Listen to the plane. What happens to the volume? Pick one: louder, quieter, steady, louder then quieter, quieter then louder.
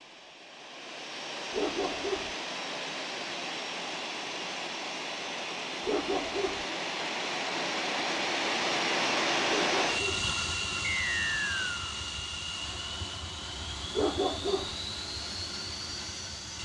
louder then quieter.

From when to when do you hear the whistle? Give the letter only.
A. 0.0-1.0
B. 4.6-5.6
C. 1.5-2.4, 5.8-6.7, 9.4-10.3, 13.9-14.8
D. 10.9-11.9
D.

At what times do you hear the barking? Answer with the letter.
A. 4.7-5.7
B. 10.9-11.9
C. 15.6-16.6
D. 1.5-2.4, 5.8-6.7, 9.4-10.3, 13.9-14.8
D.